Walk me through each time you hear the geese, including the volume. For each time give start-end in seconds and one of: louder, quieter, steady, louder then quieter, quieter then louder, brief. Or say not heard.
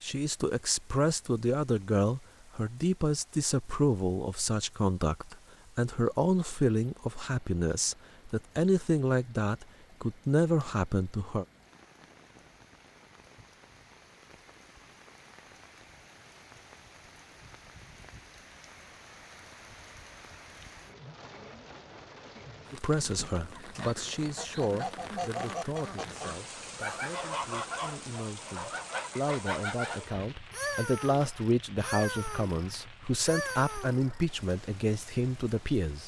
23.6-34.2 steady.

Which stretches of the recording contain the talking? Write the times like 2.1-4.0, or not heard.
0.0-11.4, 22.7-36.0.